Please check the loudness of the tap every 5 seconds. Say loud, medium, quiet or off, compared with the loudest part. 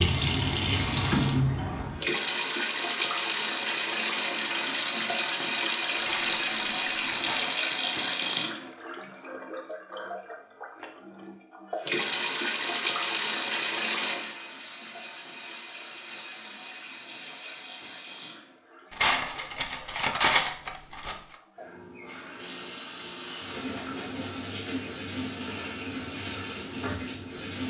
loud, loud, loud, quiet, quiet, medium.